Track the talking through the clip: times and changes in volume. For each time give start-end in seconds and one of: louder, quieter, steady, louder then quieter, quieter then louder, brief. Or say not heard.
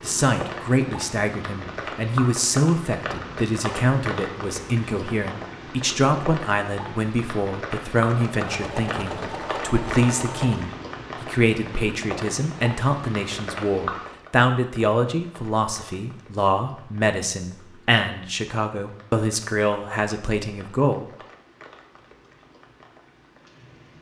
0.0-21.1 steady.